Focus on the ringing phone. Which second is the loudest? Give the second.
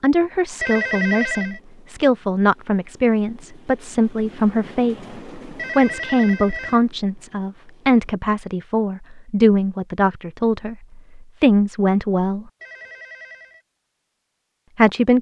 1 s.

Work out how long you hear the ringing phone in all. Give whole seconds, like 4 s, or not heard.
3 s.